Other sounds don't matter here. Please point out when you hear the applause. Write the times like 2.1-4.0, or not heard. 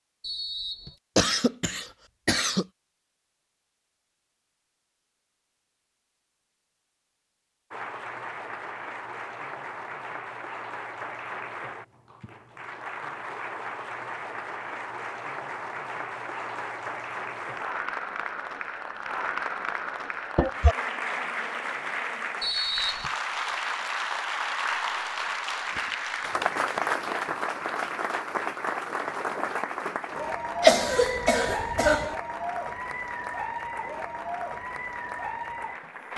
7.7-36.1.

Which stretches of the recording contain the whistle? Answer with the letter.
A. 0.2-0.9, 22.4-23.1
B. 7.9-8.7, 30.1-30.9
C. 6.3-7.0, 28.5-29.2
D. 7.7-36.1
A.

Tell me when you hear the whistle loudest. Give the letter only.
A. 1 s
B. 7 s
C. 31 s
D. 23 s
D.